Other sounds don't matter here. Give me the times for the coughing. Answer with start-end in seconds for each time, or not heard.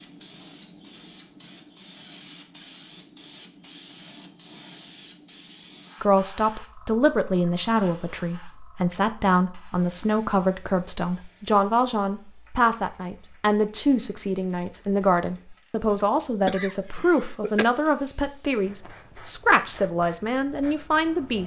16.4-17.6.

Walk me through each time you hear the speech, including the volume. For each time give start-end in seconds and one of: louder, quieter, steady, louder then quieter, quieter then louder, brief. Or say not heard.
6.0-21.4 steady.